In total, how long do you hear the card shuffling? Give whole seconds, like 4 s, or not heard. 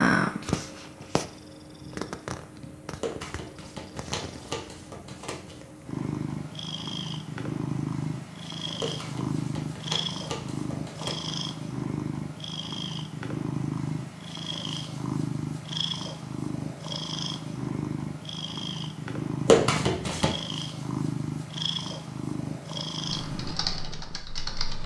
6 s.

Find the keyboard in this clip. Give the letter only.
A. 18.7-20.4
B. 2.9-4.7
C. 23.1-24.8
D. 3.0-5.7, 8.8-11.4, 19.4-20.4
C.